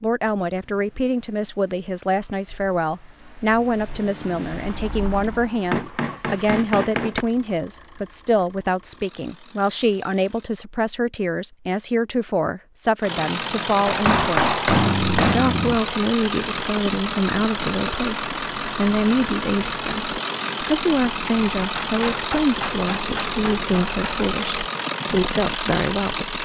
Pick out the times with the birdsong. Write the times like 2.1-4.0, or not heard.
not heard.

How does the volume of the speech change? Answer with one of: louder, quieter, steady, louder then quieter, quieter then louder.
steady.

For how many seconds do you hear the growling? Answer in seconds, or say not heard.
2 s.